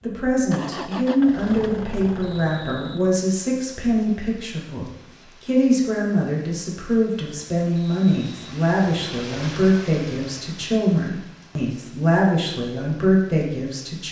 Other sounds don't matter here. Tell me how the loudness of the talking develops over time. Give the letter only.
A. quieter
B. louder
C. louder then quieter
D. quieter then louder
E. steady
E.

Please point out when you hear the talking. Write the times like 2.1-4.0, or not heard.
0.0-14.0.